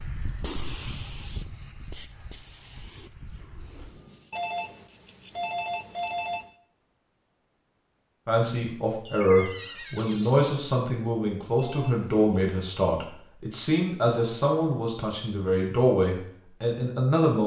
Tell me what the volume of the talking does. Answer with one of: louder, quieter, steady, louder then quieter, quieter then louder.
steady.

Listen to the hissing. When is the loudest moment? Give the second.
1 s.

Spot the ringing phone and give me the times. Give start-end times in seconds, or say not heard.
4.3-6.5, 11.6-12.6.